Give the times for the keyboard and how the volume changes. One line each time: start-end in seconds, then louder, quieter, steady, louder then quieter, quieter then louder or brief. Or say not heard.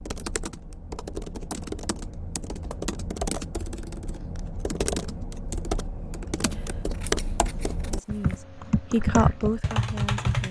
0.0-10.4 louder.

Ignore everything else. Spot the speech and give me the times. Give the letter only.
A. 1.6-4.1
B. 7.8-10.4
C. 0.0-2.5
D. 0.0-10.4
B.